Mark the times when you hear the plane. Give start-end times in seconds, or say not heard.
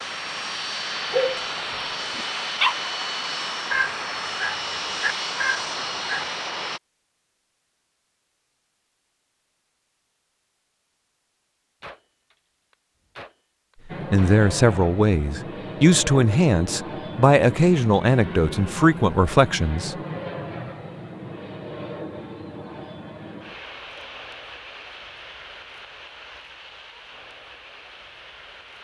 0.0-6.8, 13.8-28.7.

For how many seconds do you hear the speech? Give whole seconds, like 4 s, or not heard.
6 s.